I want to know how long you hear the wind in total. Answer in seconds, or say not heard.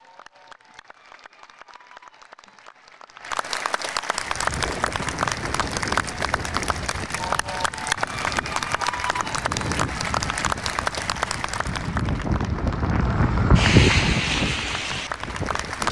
12 s.